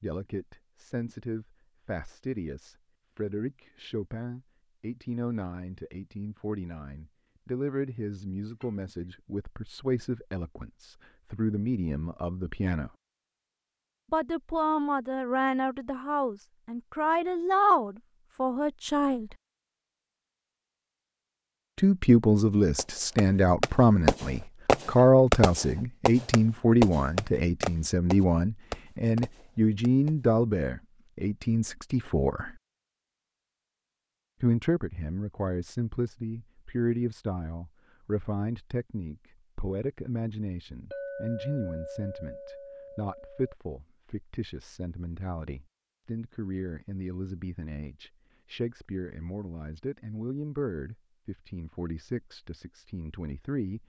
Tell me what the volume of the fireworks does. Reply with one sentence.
The loudness of the fireworks goes down.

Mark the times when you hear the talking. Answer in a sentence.
You can hear the talking from 0.0 to 12.9 s, from 14.1 to 19.4 s, from 21.8 to 32.5 s and from 34.4 to 53.8 s.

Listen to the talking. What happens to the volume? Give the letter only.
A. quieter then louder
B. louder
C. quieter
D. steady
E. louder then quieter
E.